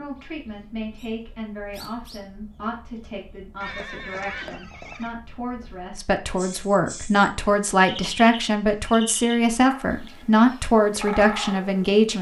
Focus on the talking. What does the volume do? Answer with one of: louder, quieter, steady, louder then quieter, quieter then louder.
louder.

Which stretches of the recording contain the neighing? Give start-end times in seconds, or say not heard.
3.6-5.2.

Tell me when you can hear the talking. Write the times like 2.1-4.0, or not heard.
0.0-12.1.